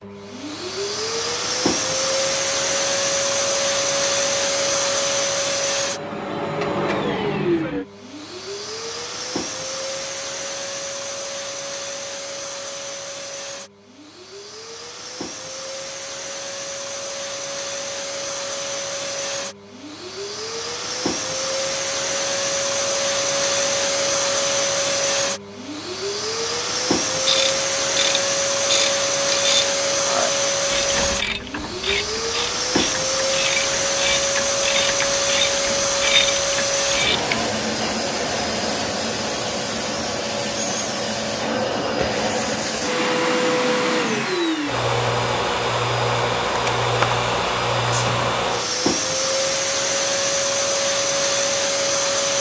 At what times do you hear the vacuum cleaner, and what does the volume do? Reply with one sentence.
You can hear the vacuum cleaner from 0.0 to 52.3 s, getting quieter then louder.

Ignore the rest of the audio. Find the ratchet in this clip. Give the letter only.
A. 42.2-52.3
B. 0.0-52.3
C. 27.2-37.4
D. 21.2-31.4
C.